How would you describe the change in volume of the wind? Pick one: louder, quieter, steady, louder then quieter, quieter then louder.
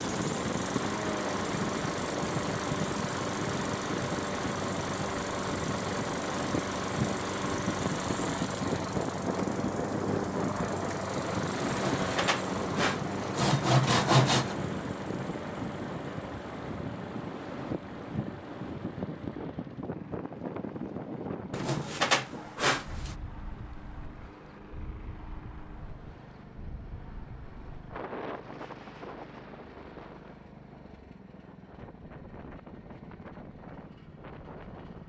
quieter.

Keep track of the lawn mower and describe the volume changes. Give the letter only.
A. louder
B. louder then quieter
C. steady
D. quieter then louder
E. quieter
E.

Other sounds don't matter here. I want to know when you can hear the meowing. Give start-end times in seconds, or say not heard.
not heard.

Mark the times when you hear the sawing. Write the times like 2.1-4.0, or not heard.
11.7-14.6, 21.5-23.1.